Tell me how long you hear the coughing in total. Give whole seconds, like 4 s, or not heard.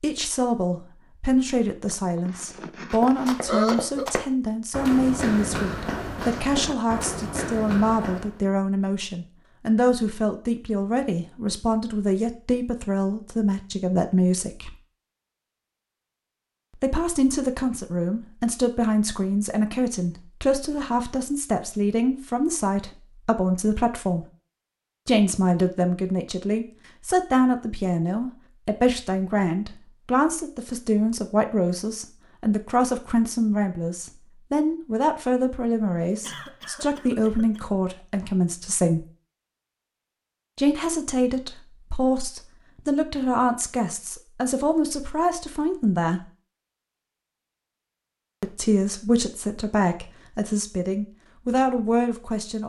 4 s.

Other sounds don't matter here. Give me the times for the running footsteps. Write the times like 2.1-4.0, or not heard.
2.9-8.4.